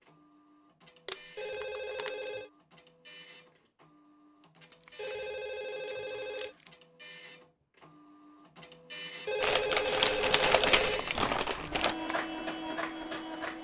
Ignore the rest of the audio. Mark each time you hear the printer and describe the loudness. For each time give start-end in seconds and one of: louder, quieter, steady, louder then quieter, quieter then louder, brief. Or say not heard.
0.0-13.5 louder.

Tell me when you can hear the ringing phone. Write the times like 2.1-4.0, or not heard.
1.4-2.5, 5.0-6.5, 9.2-11.1.